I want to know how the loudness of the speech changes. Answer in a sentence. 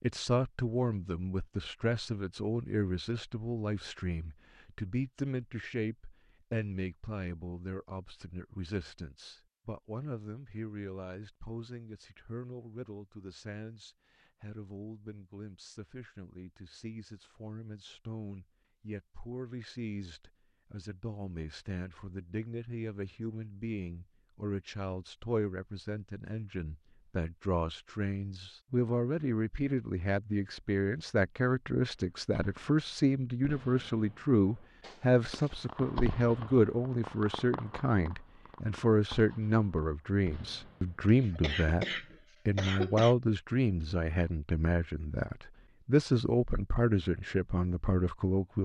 The loudness of the speech goes down, then up.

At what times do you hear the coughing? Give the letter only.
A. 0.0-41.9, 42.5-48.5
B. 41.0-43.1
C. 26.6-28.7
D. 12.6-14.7
B.